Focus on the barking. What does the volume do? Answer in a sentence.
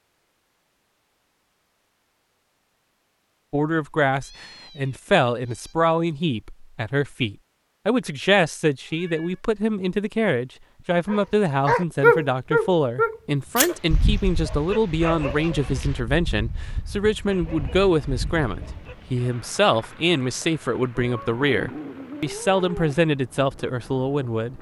The volume of the barking goes down.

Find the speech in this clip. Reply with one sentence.
The speech can be heard from 3.5 to 24.5 s.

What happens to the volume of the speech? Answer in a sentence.
The volume of the speech stays about the same.